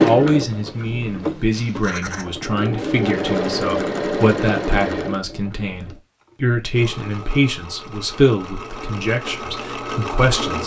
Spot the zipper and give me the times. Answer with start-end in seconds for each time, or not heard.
1.5-2.2.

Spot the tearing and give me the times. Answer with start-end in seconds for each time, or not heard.
not heard.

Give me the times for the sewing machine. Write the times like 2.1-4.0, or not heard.
0.0-10.6.